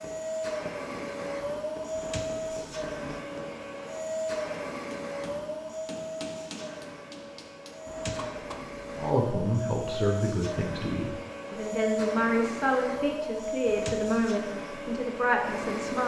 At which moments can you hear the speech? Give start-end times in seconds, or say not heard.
9.0-16.0.